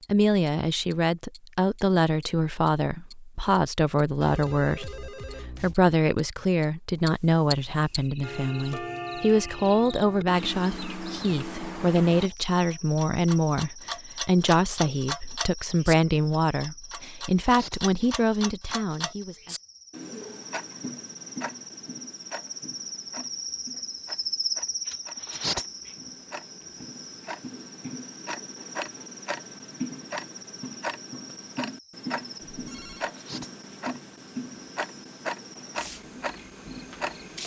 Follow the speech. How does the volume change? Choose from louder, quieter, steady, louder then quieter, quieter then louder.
steady.